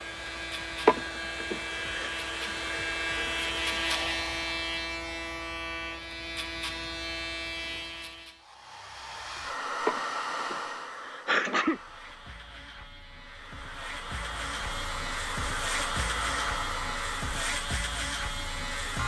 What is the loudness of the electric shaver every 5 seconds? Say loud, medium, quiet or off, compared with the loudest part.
loud, loud, medium, loud.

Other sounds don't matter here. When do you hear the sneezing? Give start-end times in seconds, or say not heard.
0.8-2.1, 9.8-11.8.